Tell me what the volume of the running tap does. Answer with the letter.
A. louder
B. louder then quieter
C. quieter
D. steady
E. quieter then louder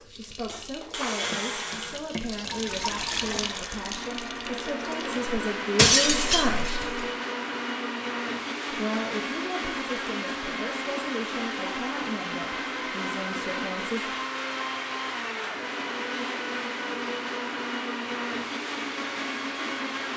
B.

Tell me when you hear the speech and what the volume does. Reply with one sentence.
You can hear the speech from 0.0 to 7.0 s, getting louder; and from 8.7 to 14.2 s, at a steady volume.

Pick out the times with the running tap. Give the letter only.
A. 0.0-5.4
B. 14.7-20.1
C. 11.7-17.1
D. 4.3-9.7
A.